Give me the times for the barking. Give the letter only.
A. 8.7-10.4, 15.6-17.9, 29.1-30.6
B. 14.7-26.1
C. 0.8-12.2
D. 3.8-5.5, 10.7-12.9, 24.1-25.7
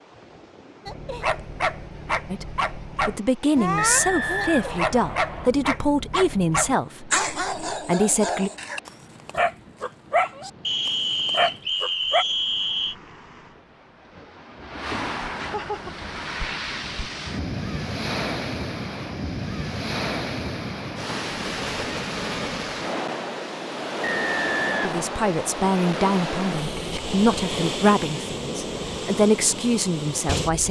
C.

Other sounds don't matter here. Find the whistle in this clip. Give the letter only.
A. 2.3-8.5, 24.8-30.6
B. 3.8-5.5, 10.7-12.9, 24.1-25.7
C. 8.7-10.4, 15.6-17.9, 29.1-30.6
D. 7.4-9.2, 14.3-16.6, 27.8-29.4
B.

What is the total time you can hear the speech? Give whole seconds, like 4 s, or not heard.
12 s.